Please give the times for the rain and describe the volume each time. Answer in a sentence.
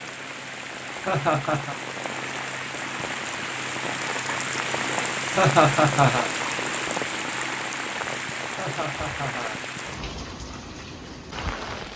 The rain can be heard from 0.0 to 11.9 s, getting louder then quieter.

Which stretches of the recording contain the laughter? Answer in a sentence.
The laughter can be heard from 1.1 to 1.8 s, from 5.3 to 6.3 s and from 8.6 to 9.6 s.